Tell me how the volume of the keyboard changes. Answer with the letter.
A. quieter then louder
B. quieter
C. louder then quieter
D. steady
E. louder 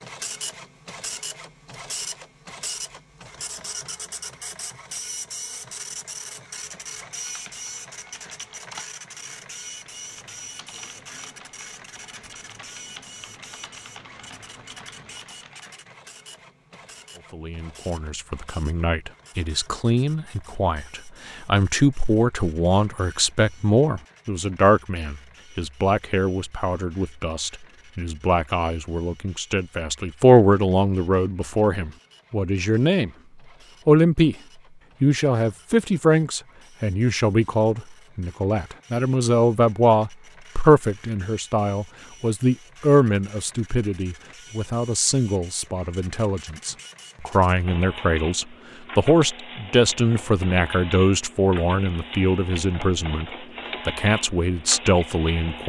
A.